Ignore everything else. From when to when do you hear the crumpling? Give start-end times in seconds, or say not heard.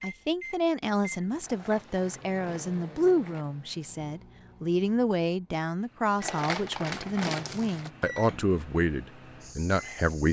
1.4-3.5, 6.2-7.9.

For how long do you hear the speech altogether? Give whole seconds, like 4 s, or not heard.
10 s.